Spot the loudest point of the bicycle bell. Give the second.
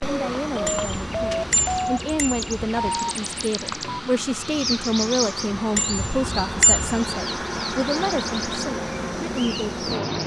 7 s.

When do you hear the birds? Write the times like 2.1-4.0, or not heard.
0.0-10.2.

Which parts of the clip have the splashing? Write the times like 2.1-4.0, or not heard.
not heard.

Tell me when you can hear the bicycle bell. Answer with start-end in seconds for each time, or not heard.
0.7-2.8, 5.8-7.2.